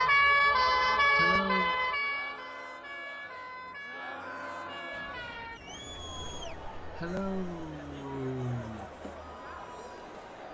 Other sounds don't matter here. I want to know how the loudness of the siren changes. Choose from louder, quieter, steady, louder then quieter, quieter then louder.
quieter.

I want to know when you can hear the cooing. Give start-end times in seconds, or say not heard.
not heard.